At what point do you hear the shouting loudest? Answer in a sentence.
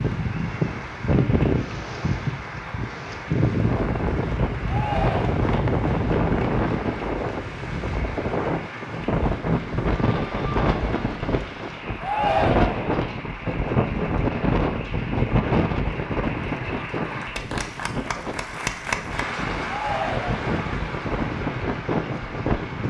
The volume of the shouting peaks at 12 seconds.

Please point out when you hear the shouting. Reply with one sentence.
You can hear the shouting from 4.7 to 5.3 s, from 12.0 to 12.9 s and from 19.6 to 20.4 s.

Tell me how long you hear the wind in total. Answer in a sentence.
The wind can be heard for 23 seconds in total.